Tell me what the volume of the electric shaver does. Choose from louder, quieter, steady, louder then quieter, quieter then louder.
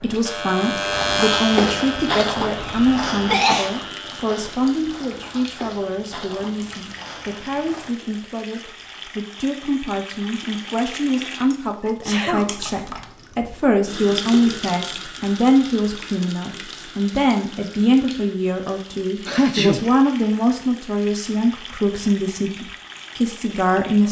quieter.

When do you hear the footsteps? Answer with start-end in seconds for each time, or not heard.
0.9-8.0.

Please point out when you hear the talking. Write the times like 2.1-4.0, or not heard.
0.0-24.0.